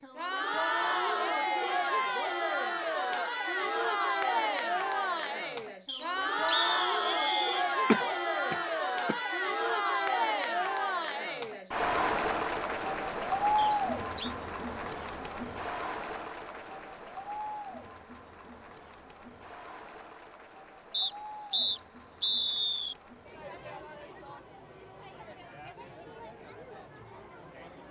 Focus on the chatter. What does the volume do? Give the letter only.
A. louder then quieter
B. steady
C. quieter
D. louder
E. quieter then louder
C.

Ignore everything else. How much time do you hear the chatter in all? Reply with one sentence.
You can hear the chatter for 28 seconds altogether.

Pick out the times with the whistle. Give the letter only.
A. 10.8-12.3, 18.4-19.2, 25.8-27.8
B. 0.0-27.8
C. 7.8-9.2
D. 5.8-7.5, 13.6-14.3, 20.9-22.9
D.